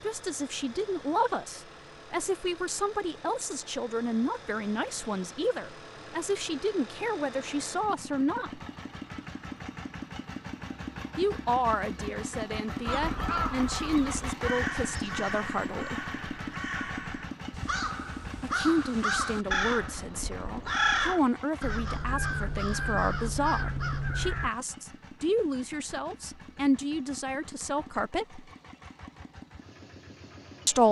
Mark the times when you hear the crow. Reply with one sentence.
The crow can be heard from 12.8 to 24.5 s.